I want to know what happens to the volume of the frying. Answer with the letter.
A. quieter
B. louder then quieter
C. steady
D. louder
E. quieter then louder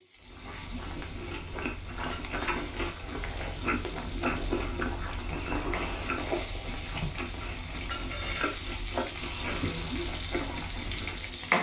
D.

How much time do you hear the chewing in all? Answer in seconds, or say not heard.
11 s.